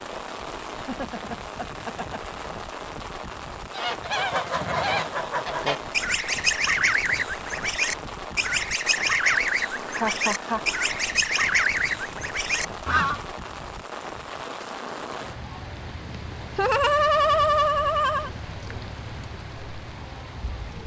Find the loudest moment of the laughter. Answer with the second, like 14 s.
17 s.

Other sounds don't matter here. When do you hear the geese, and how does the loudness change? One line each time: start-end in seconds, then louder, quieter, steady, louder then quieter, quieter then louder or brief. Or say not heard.
3.7-13.2 steady.